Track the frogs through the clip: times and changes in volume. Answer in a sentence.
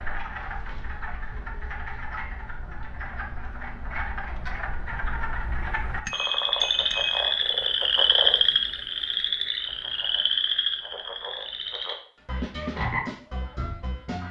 The frogs can be heard from 0.0 to 14.2 s, getting louder then quieter.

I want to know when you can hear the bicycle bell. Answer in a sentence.
You can hear the bicycle bell from 6.0 to 7.3 s.